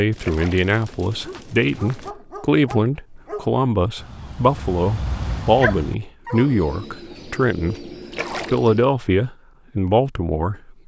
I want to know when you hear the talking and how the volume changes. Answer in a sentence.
The talking can be heard from 0.0 to 7.9 s, at a steady volume; and briefly from 8.5 to 10.8 s.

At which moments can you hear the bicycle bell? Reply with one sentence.
The bicycle bell can't be heard in this clip.